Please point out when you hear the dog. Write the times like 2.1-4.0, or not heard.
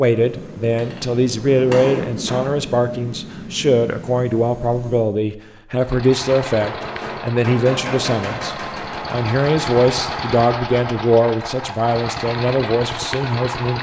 not heard.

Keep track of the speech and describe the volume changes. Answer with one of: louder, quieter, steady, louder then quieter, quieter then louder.
steady.